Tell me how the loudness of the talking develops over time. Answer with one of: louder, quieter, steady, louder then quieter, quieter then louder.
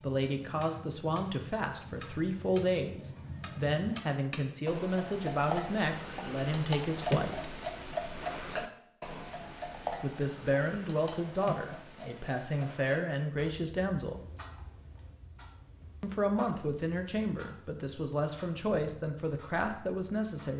steady.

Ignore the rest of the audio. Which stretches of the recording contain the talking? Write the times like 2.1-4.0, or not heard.
0.0-7.5, 10.0-14.2, 16.0-20.5.